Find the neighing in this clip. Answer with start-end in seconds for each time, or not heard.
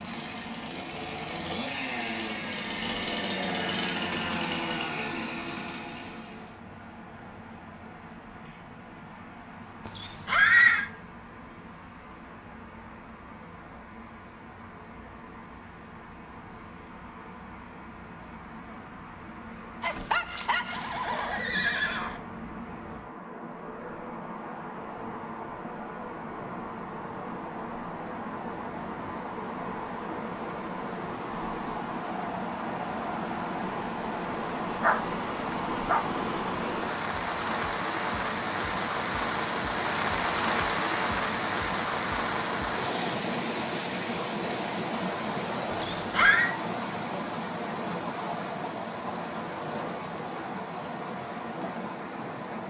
9.8-10.8, 20.7-22.2, 45.7-46.5.